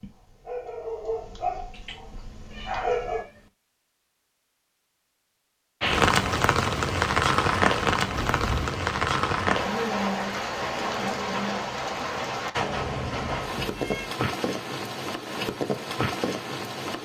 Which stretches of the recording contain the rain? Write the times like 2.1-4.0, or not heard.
5.8-17.0.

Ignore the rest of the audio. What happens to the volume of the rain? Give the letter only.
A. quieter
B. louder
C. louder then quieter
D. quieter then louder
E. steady
A.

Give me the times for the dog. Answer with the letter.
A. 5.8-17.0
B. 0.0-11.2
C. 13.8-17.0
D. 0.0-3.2
D.